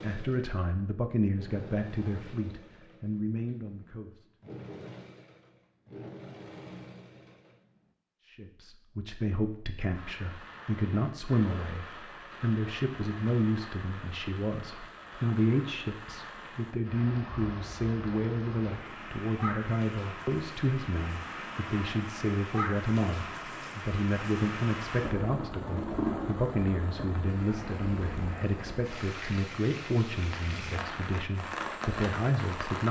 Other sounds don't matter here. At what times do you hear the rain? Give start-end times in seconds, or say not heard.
9.9-32.8.